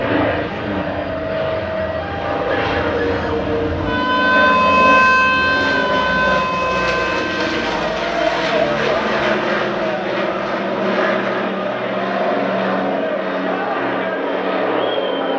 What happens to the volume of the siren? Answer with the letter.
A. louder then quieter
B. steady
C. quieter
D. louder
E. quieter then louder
A.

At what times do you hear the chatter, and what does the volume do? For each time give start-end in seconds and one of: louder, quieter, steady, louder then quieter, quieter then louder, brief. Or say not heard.
7.7-15.3 steady.